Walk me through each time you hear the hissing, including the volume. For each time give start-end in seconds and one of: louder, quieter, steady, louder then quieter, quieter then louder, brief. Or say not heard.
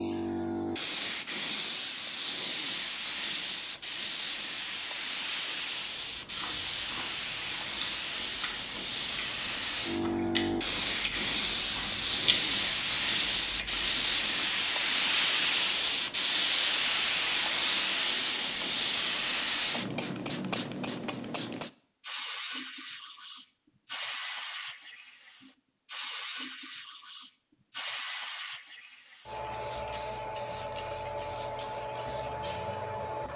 0.0-33.3 louder then quieter.